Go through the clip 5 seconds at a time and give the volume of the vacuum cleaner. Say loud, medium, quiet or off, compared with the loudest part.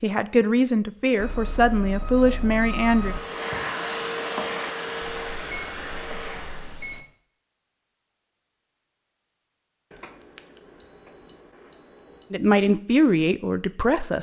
loud, medium, off.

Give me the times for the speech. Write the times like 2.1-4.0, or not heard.
0.0-3.1, 12.3-14.1.